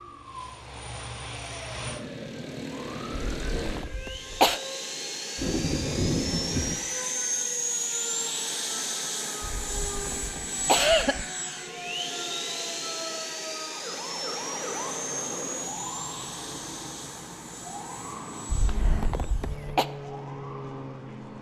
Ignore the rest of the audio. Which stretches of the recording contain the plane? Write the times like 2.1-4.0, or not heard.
0.0-21.3.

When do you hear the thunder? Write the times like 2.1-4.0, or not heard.
5.3-6.8.